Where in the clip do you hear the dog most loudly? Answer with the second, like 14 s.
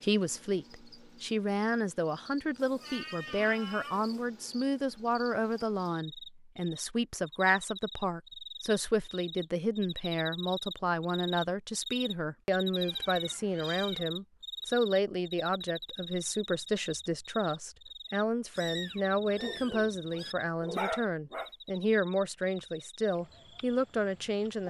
21 s.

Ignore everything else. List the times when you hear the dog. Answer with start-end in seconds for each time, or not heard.
19.4-21.5.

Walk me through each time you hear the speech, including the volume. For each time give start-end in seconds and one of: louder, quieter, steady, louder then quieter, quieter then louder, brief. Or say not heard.
0.0-24.6 steady.